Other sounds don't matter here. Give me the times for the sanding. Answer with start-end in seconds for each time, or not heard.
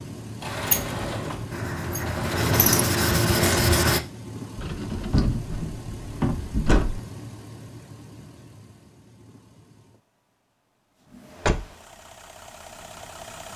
1.5-4.0.